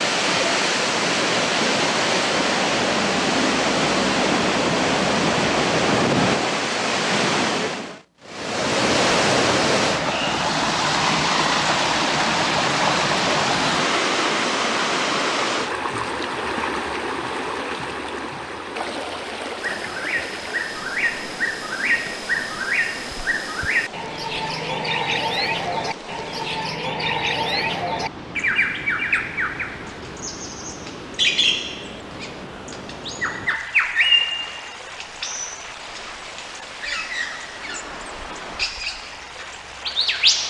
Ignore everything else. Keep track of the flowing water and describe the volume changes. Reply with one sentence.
The volume of the flowing water goes down.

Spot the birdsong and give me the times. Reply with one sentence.
You can hear the birdsong from 19.6 to 40.4 s.